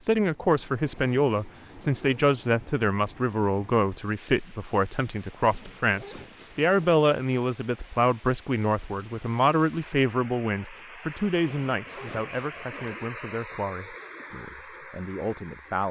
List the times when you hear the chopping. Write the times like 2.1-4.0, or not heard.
not heard.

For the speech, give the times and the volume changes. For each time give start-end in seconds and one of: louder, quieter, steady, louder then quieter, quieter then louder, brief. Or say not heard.
0.0-15.8 quieter.